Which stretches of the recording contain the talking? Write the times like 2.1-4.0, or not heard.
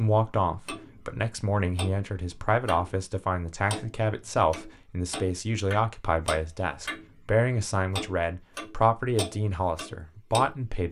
0.0-10.8.